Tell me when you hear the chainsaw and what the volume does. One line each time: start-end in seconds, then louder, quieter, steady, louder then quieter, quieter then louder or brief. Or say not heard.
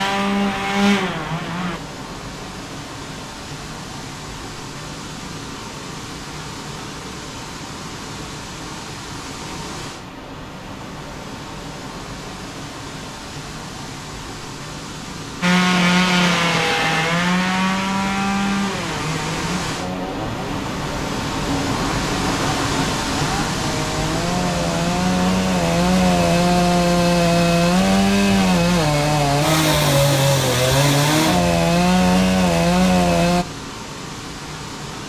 0.0-1.8 brief
15.4-33.5 quieter then louder.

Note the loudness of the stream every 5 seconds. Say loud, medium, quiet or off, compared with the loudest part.
medium, medium, medium, medium, loud, medium, medium.